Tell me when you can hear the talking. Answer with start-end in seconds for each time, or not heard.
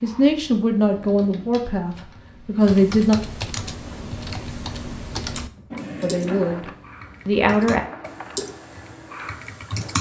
0.0-3.1, 6.0-6.7, 7.2-7.8.